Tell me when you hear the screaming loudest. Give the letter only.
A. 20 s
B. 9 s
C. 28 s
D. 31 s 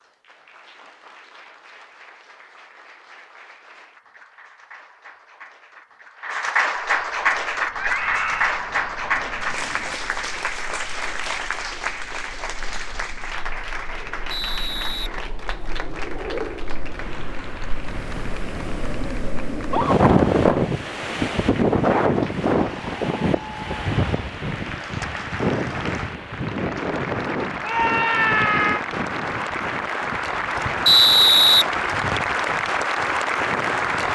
C.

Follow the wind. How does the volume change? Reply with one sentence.
The loudness of the wind goes up, then down.